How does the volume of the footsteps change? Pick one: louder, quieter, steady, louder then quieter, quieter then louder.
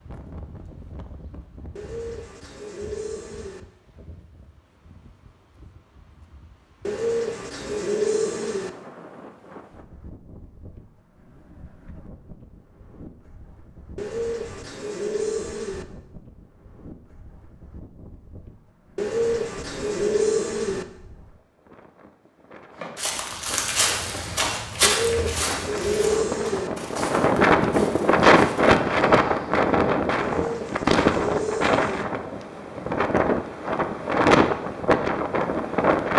quieter.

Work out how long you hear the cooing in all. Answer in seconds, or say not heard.
11 s.